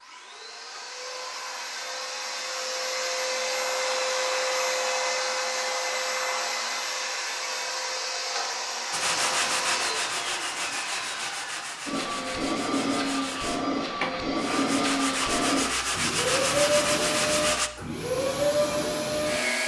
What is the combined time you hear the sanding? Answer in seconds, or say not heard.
9 s.